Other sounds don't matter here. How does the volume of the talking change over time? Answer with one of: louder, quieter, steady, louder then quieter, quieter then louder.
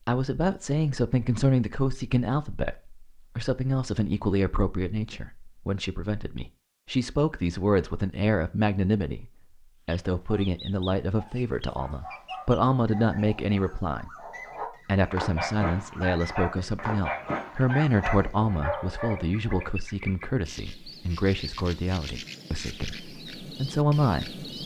steady.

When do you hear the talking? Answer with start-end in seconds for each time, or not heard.
0.1-14.1, 14.8-24.4.